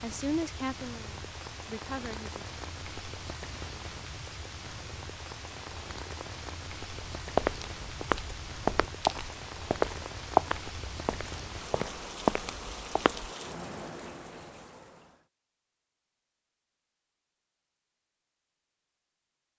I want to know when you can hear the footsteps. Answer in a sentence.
The footsteps can be heard from 7.2 to 13.3 s.